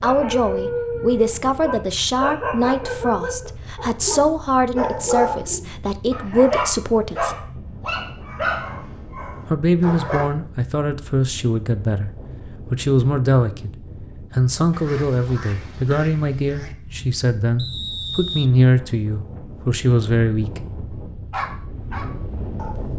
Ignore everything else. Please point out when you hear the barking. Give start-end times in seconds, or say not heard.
0.0-10.3, 21.3-22.9.